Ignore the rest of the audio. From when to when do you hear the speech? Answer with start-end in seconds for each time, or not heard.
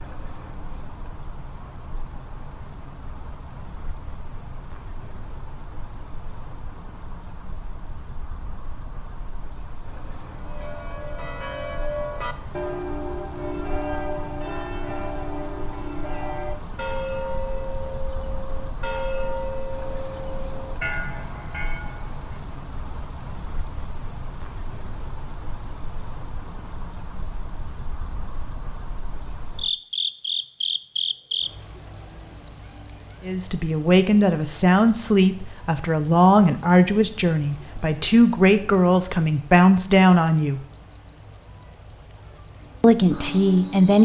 33.2-40.6, 42.8-43.9.